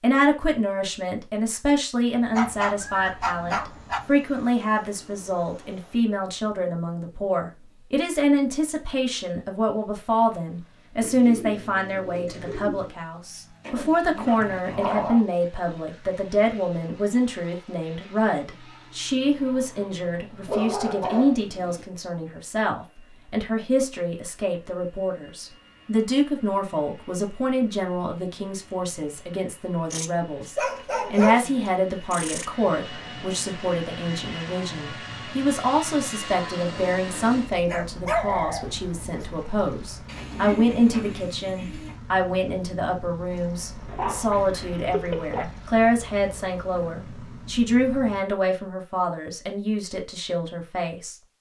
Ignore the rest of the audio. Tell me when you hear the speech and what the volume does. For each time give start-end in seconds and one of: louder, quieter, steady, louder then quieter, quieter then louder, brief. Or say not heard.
0.0-51.1 steady.